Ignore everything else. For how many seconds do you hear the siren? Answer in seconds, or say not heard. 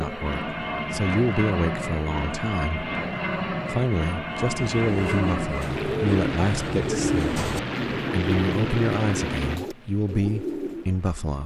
not heard.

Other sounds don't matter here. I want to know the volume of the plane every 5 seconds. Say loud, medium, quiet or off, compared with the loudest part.
loud, loud, quiet.